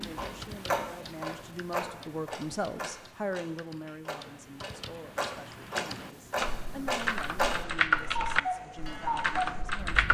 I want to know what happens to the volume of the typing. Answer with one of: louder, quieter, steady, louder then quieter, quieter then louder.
quieter then louder.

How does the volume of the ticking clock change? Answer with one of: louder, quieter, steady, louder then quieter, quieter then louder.
quieter then louder.